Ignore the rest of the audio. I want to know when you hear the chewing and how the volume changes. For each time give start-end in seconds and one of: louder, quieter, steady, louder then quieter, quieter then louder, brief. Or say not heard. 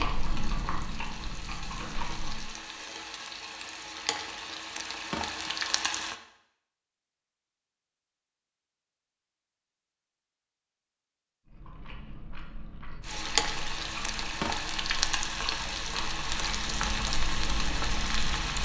0.0-2.5 brief
11.4-18.6 louder.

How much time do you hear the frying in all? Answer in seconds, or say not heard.
12 s.